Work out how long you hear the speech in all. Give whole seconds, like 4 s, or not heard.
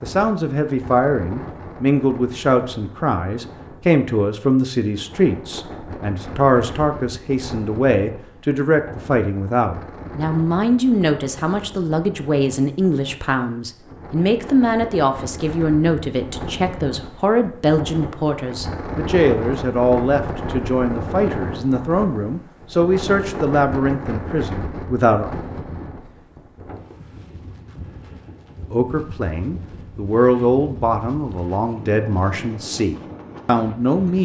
31 s.